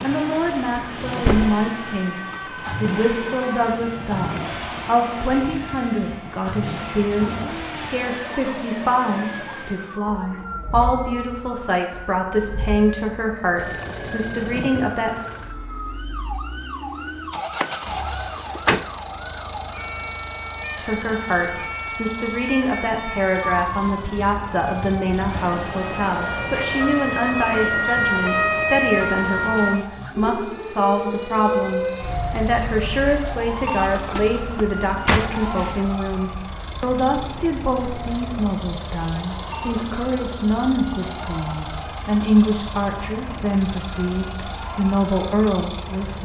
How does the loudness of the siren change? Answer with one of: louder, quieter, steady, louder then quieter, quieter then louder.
louder then quieter.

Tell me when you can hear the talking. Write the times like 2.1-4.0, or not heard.
0.0-15.2, 20.8-46.2.